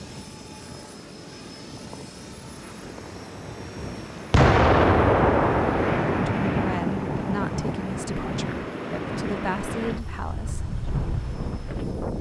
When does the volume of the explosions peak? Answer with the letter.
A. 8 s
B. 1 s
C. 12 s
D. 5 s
D.